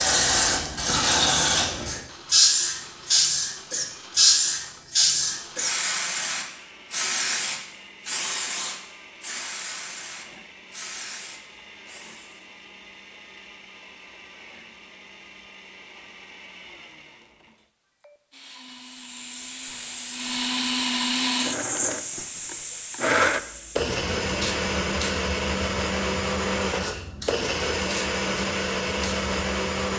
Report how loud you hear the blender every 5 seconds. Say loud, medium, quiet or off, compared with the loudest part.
quiet, quiet, quiet, quiet, loud, loud.